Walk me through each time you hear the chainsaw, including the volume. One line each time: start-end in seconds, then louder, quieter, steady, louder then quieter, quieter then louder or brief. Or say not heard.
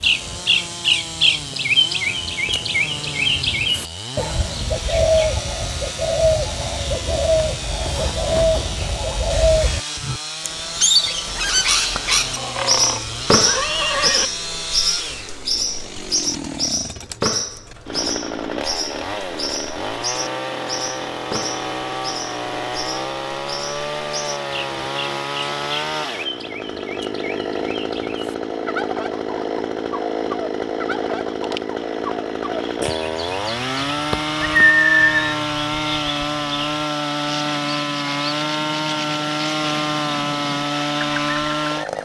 0.0-41.9 louder.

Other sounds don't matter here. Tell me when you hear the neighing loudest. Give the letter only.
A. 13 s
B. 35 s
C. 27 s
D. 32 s
B.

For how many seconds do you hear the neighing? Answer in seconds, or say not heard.
3 s.